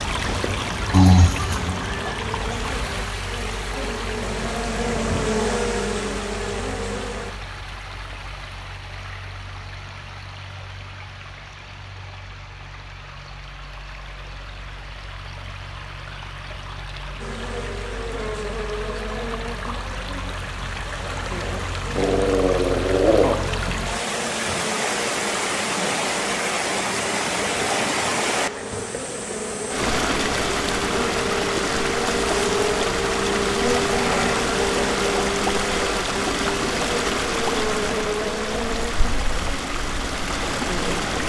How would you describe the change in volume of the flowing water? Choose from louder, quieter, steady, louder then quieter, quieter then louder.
quieter then louder.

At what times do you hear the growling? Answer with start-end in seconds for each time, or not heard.
0.9-1.8, 21.9-23.4, 33.8-34.4.